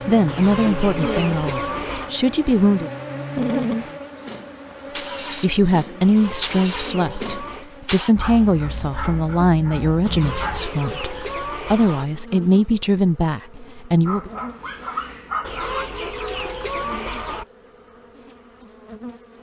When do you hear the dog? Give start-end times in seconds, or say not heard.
3.4-4.0, 8.2-10.7, 14.1-15.8.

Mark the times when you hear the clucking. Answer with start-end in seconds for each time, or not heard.
0.2-2.1, 6.0-7.7, 10.1-12.1, 15.4-17.4.